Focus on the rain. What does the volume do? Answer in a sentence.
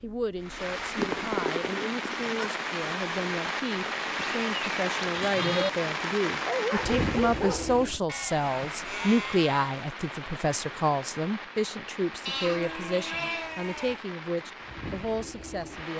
The loudness of the rain goes down.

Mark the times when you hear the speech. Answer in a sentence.
The speech can be heard from 0.0 to 15.9 s.